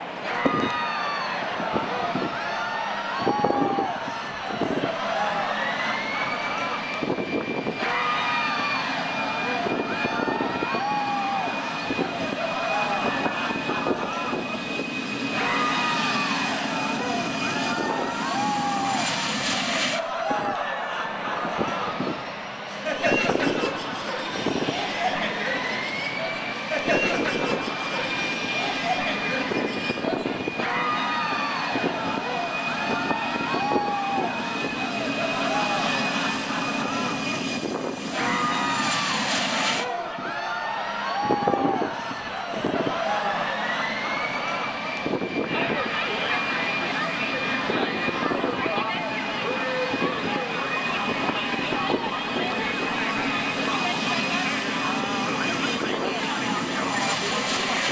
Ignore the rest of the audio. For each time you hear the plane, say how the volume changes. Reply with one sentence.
You can hear the plane from 0.0 to 57.8 s, at a steady volume.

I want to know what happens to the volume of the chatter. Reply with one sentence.
The volume of the chatter stays about the same.